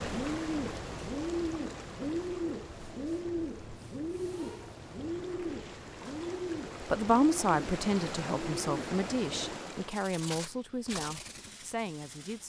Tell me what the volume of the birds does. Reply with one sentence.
The loudness of the birds goes down.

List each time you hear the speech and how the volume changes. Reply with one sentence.
You can hear the speech from 6.9 to 12.4 s, getting quieter.